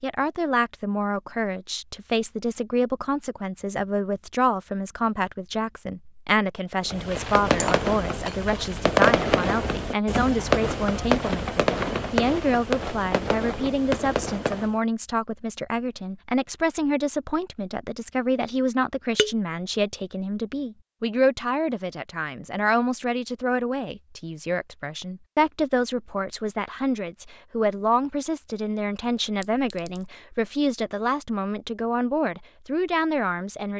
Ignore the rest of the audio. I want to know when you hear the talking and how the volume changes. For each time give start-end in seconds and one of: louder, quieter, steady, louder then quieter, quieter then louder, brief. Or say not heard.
0.0-33.7 steady.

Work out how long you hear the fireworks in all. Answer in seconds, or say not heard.
8 s.